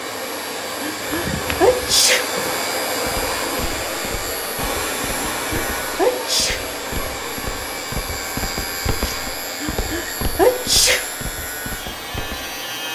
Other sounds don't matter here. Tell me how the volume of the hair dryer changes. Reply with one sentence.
The volume of the hair dryer goes down.